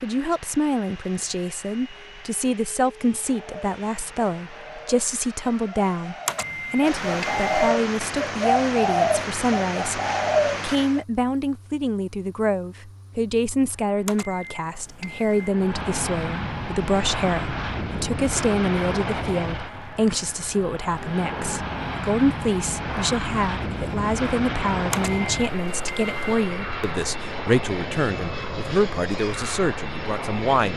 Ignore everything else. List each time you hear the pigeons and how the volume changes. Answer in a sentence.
The pigeons can be heard from 3.1 to 11.1 s, getting louder.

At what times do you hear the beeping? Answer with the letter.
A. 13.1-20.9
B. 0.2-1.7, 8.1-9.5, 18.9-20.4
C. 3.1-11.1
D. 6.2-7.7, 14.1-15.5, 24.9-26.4
D.